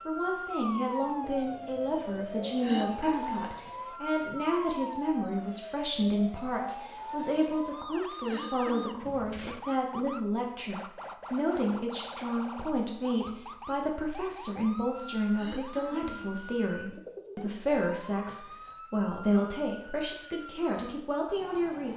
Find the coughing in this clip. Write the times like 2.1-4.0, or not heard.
2.6-3.5, 8.2-9.2, 15.3-16.3.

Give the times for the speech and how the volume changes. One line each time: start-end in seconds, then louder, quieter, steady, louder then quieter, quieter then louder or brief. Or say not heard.
0.1-21.9 steady.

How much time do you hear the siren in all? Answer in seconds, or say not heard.
22 s.